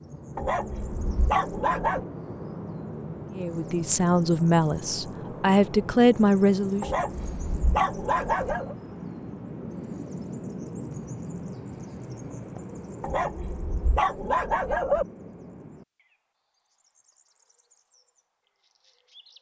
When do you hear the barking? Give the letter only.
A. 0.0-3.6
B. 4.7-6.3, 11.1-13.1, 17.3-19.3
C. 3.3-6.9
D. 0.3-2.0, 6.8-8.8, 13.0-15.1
D.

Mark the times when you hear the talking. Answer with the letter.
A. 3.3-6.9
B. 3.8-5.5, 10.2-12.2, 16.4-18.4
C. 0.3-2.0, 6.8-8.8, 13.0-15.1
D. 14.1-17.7
A.